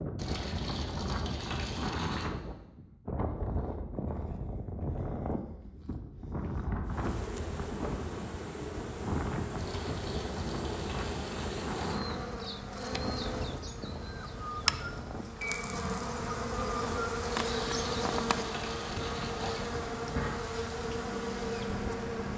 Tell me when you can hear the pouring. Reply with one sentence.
You can hear the pouring from 0.1 to 2.3 s, from 9.6 to 12.0 s and from 17.2 to 19.8 s.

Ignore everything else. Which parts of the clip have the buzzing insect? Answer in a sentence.
The buzzing insect can be heard from 6.8 to 22.3 s.